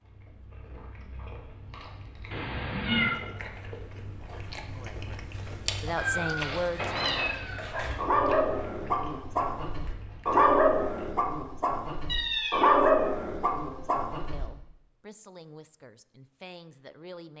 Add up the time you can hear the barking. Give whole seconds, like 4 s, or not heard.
7 s.